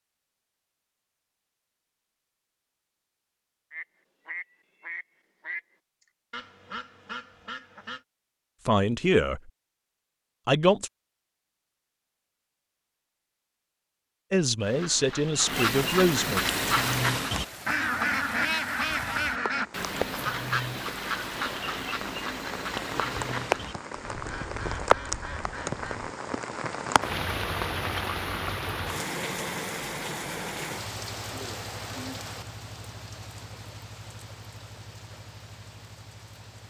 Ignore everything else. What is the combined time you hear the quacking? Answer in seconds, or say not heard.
16 s.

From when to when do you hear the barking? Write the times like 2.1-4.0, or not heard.
not heard.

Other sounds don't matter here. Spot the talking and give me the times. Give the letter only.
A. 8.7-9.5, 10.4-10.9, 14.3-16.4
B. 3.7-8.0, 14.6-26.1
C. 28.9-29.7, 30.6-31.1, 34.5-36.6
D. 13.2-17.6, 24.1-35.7
A.